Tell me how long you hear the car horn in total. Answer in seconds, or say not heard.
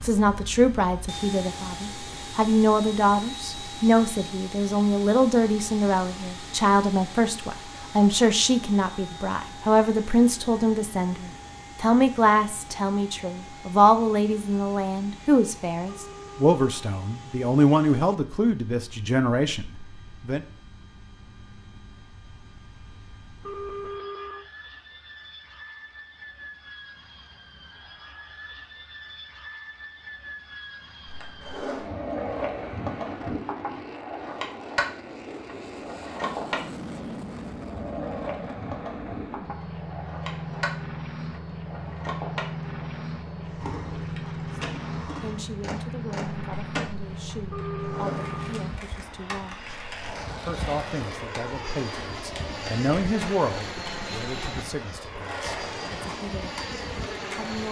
4 s.